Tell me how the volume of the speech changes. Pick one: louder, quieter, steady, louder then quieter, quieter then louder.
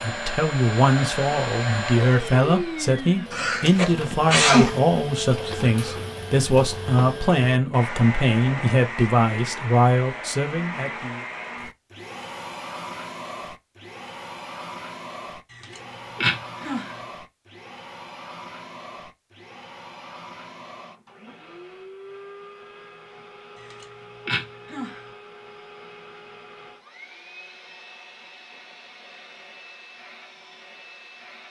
steady.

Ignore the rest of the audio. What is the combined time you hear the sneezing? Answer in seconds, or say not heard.
4 s.